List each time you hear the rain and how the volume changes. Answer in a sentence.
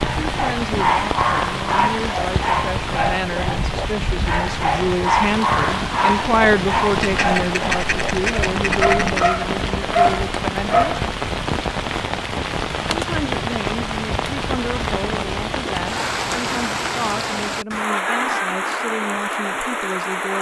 You can hear the rain from 0.0 to 20.3 s, at a steady volume.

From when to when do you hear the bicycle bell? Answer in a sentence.
You can't hear the bicycle bell here.